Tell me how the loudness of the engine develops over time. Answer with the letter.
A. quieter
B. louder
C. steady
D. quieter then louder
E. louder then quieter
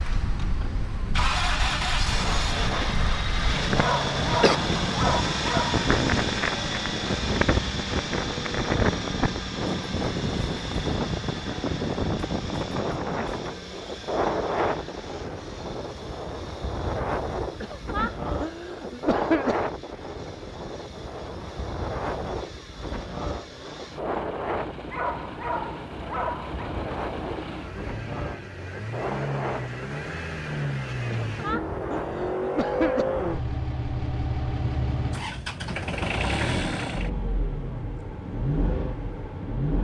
D.